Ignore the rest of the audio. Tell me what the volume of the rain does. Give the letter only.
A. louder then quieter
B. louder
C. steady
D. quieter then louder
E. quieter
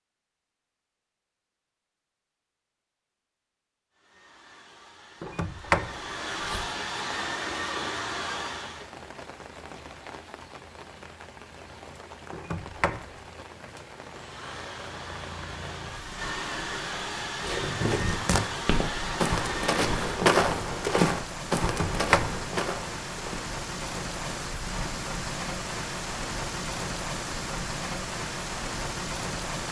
B.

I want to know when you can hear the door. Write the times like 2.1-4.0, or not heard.
5.2-6.7, 12.3-13.1, 21.6-22.4.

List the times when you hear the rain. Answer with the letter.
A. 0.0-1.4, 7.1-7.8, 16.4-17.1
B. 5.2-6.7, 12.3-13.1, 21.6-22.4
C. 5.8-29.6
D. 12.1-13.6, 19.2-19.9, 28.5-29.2
C.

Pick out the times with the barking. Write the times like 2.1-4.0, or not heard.
not heard.